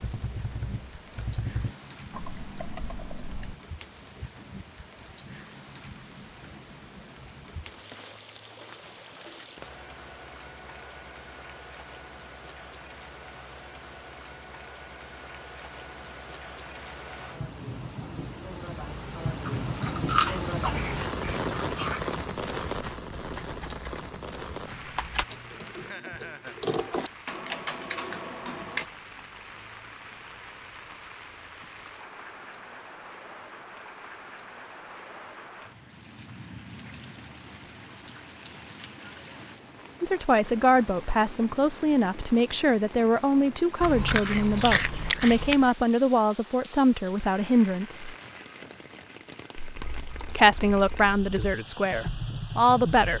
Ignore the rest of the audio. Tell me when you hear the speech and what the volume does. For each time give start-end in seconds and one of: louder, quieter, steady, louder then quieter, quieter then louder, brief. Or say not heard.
40.0-48.1 steady
50.2-53.1 brief.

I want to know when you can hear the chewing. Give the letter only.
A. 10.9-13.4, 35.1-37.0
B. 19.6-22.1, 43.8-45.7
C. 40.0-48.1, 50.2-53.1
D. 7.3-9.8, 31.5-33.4
B.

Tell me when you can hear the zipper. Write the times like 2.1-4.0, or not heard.
not heard.